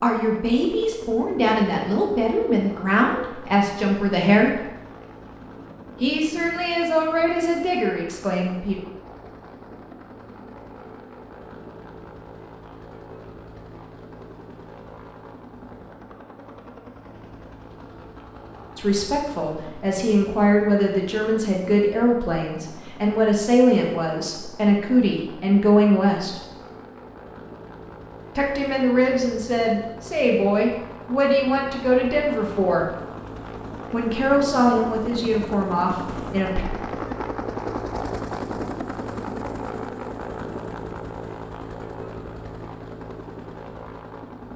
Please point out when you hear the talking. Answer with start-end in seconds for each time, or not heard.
0.0-4.7, 6.0-8.8, 18.8-26.4, 28.4-32.9, 33.9-36.6.